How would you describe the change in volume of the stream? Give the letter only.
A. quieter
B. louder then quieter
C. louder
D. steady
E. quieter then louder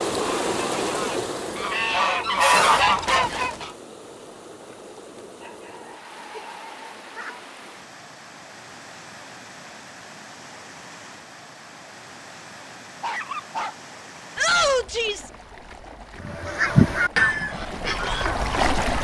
E.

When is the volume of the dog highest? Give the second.
13 s.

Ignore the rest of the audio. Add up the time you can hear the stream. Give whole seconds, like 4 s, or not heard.
19 s.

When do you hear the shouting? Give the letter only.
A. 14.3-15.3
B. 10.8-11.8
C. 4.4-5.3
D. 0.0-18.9
A.